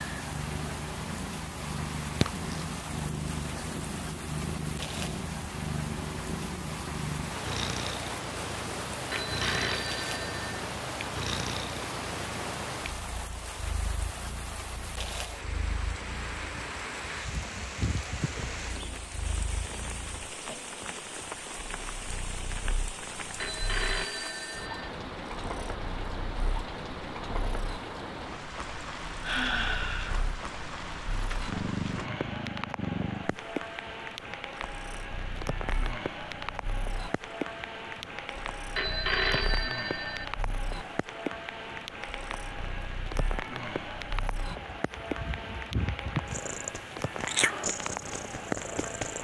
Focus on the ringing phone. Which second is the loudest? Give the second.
39 s.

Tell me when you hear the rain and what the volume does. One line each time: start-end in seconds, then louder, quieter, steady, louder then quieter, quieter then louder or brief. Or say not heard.
0.0-49.2 steady.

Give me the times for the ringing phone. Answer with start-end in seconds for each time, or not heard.
9.1-10.6, 23.4-24.9, 38.8-40.2.